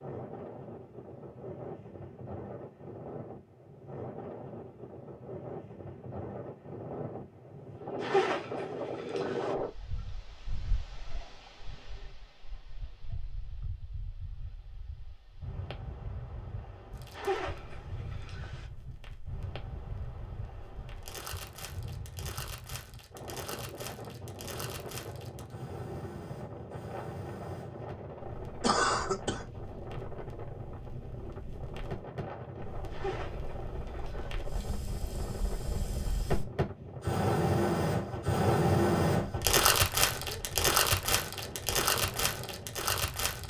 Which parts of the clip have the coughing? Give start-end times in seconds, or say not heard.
28.6-29.4.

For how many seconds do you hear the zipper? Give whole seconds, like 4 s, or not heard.
5 s.